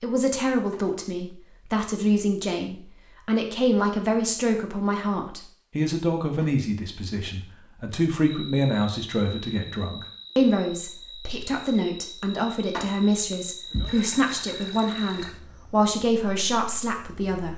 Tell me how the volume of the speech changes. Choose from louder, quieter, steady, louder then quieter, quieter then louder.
steady.